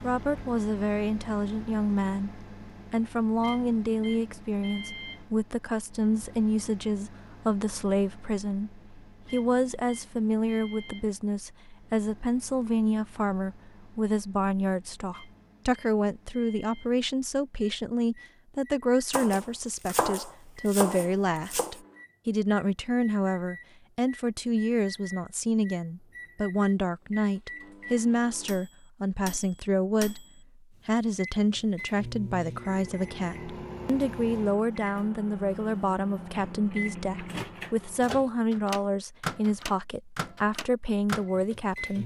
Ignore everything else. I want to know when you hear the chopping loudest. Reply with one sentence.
The loudest moment of the chopping is at 20 seconds.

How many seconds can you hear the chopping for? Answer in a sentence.
The chopping can be heard for 3 seconds in total.